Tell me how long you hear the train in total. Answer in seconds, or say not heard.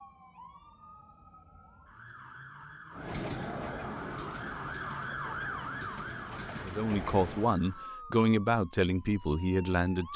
5 s.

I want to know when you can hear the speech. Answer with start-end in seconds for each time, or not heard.
6.7-10.1.